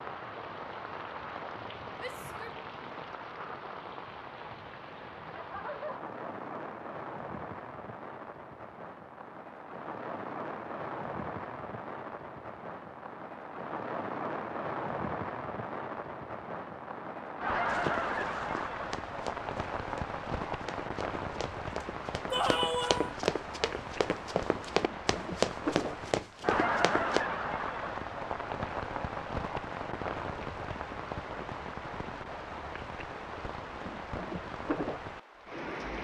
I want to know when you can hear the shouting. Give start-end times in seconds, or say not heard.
1.9-2.5, 22.3-23.1.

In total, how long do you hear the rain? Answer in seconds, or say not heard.
36 s.